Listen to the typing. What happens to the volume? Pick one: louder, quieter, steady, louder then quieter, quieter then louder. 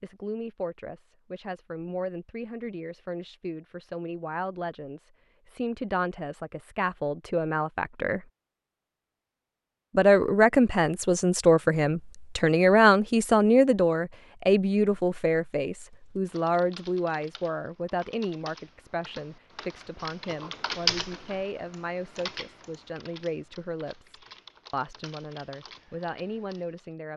louder then quieter.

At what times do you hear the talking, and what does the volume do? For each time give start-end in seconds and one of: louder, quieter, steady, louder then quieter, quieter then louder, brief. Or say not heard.
0.0-8.2 louder
9.9-27.1 quieter.